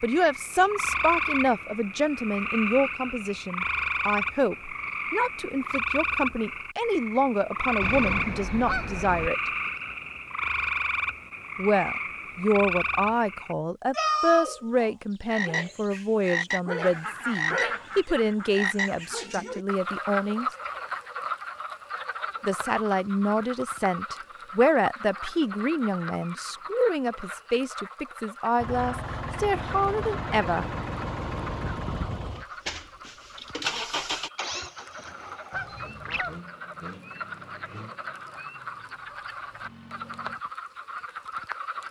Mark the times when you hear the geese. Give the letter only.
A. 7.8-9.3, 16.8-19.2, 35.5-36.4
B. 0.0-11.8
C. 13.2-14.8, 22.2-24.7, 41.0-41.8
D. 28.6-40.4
A.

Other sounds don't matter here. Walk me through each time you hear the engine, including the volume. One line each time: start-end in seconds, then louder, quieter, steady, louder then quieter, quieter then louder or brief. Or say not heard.
28.6-40.4 quieter.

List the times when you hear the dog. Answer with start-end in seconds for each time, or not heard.
not heard.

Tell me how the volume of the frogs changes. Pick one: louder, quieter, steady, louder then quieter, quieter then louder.
quieter.